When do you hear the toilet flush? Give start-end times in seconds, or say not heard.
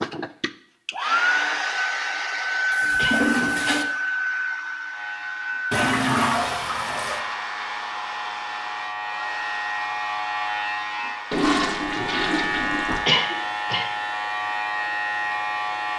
2.7-3.9, 5.7-7.2, 11.3-13.1.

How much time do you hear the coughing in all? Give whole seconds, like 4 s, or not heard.
2 s.